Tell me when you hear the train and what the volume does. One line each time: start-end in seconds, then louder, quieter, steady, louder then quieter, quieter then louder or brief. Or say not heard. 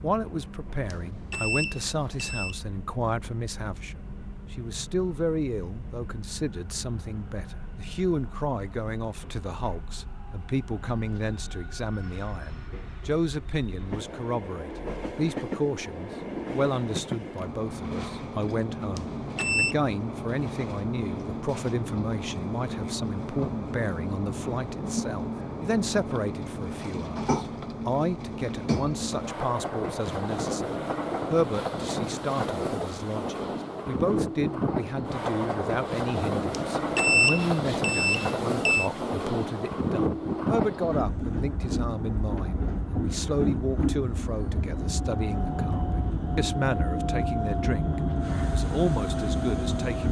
0.0-50.0 louder.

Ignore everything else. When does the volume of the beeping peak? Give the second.
37 s.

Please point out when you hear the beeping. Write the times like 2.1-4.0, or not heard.
0.9-2.5, 18.9-19.8, 36.5-38.9.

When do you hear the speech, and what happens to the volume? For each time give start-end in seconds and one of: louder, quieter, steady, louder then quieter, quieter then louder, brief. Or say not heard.
0.0-50.0 steady.